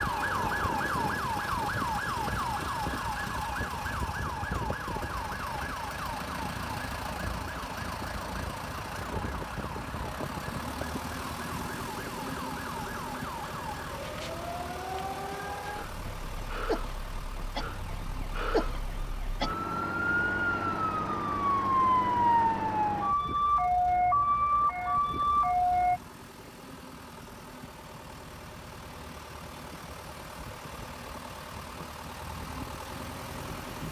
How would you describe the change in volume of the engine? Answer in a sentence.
The loudness of the engine goes down, then up.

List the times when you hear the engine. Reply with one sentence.
The engine can be heard from 0.0 to 33.8 s.